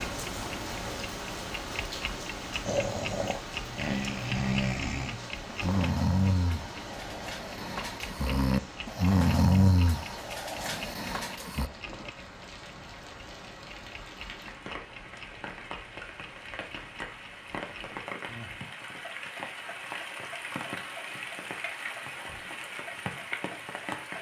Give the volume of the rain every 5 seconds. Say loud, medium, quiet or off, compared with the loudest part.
loud, medium, medium, loud, loud.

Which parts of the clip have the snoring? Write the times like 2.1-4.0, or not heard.
2.6-11.7.